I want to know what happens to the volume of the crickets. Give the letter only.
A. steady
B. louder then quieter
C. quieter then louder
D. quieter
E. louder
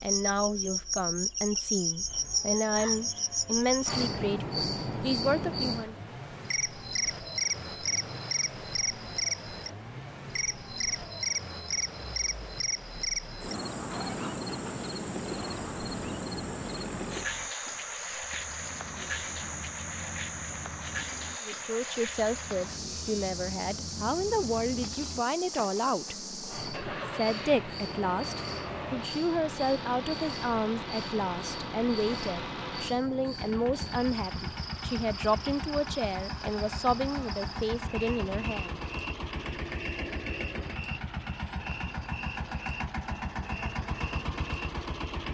D.